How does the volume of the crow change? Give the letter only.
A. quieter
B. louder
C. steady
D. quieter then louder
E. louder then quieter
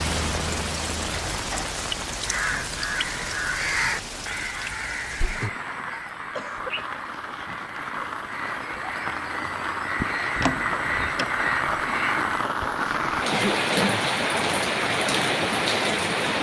D.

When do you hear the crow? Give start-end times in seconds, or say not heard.
2.2-12.5.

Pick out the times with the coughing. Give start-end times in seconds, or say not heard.
1.1-1.8, 6.3-6.9, 13.3-14.1.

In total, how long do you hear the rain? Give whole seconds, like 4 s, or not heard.
16 s.